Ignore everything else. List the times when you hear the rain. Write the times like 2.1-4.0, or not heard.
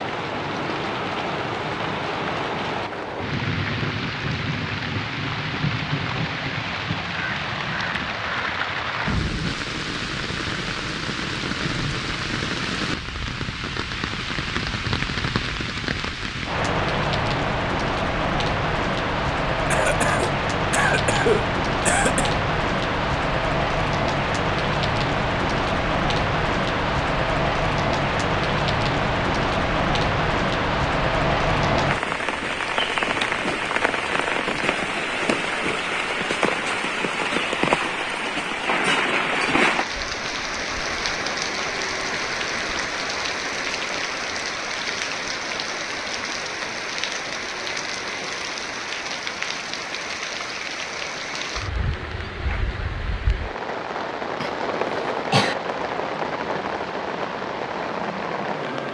0.0-58.8.